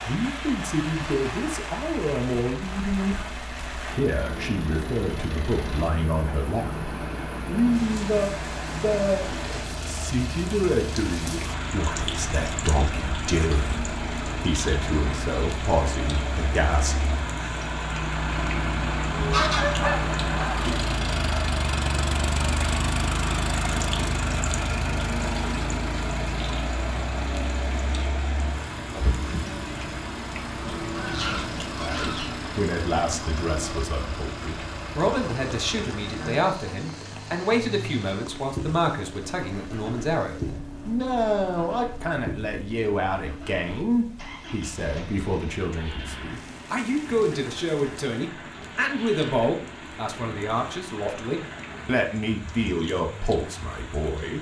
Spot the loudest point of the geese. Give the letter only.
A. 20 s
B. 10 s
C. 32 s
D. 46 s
A.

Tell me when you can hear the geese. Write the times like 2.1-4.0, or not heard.
19.1-20.6, 30.9-32.4.